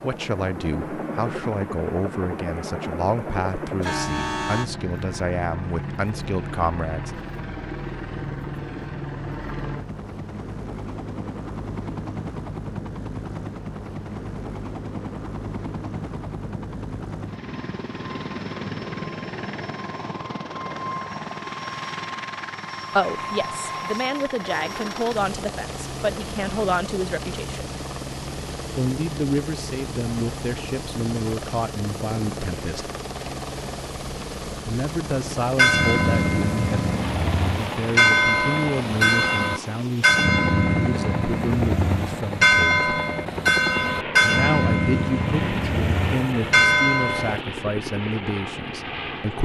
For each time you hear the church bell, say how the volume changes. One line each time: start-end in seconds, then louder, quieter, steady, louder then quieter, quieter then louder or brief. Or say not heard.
35.5-47.4 steady.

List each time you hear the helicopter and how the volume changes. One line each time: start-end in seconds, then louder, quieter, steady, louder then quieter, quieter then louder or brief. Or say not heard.
0.0-49.4 steady.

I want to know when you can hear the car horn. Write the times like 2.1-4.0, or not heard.
3.8-4.7.